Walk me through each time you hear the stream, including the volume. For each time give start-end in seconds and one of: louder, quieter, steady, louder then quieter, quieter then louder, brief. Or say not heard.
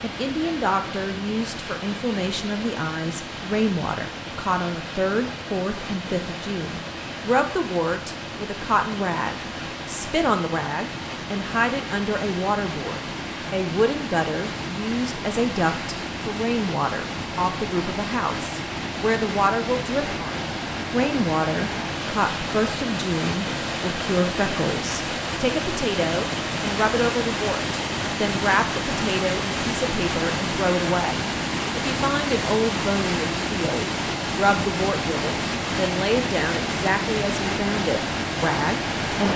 0.0-39.3 louder.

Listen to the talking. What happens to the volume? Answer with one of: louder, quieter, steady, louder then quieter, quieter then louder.
steady.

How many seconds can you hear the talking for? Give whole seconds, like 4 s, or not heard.
39 s.